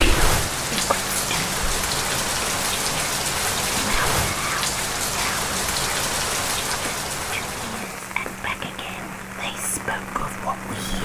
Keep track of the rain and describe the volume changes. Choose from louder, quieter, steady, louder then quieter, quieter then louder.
quieter.